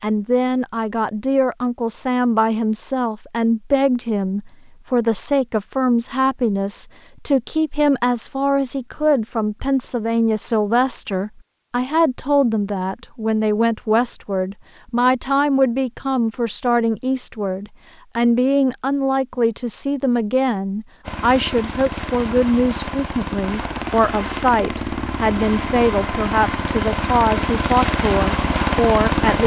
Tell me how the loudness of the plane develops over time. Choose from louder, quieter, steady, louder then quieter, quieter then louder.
louder.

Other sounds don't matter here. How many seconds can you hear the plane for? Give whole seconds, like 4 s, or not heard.
8 s.